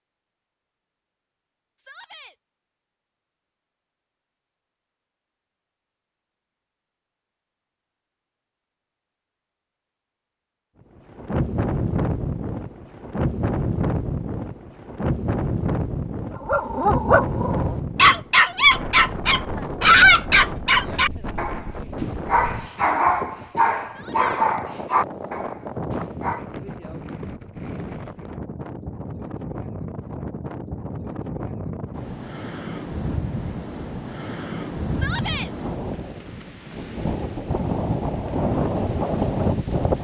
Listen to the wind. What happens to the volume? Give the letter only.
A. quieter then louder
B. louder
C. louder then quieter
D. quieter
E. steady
A.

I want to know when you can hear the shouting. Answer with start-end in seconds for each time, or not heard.
1.8-2.4, 23.9-24.4, 34.9-35.5.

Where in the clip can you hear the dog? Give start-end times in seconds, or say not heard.
16.4-26.4.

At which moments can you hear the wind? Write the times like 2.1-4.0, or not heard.
11.1-39.9.